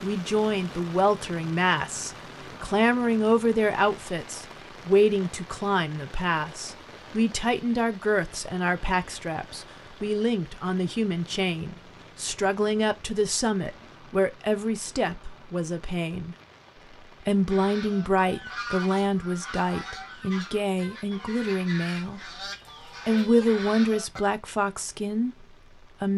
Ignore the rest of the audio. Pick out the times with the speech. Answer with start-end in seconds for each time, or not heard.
0.0-16.4, 17.2-22.3, 23.1-26.1.